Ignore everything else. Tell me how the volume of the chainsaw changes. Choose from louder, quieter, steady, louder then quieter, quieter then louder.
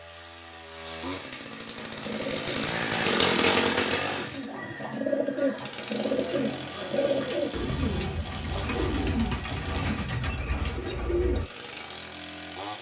louder then quieter.